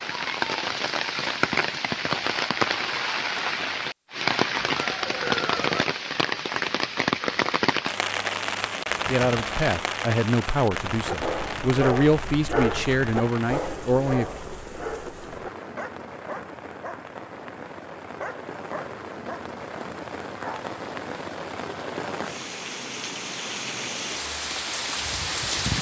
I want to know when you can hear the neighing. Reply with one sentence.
You can hear the neighing from 4.5 to 6.0 s.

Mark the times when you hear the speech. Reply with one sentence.
You can hear the speech from 9.1 to 14.2 s.